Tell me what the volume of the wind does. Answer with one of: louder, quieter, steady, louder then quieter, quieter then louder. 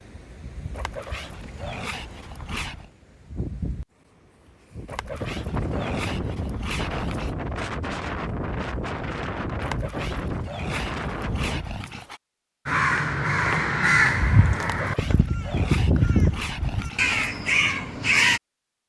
louder.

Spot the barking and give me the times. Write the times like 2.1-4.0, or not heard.
0.7-2.9, 4.8-7.3, 9.6-12.2, 14.8-17.3.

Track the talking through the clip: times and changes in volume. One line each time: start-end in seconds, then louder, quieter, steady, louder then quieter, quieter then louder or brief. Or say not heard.
not heard.